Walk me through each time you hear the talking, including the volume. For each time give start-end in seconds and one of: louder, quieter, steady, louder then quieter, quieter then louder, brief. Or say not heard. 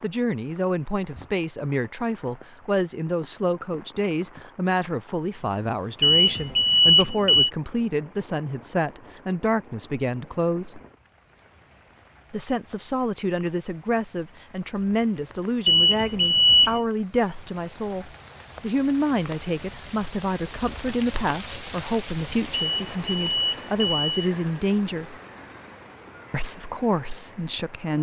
0.0-10.8 steady
12.3-25.1 steady
26.3-27.9 brief.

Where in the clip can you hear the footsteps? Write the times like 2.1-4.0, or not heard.
not heard.